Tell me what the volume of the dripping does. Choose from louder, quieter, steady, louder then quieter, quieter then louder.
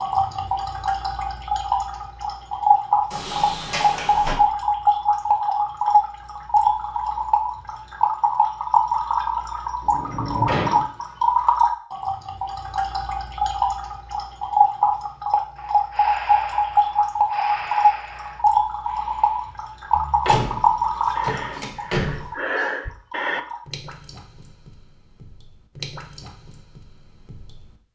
quieter.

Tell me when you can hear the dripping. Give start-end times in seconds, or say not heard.
0.0-27.8.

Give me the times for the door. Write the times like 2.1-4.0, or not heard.
3.1-4.3, 9.8-10.8, 20.2-22.3.